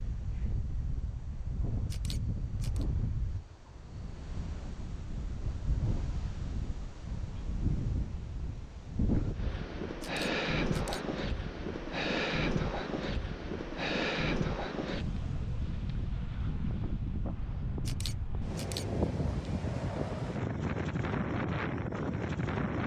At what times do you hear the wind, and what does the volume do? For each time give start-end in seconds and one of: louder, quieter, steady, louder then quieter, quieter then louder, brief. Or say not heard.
0.0-22.8 louder.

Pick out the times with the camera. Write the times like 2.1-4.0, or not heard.
1.9-2.9, 10.0-11.0, 17.9-18.9.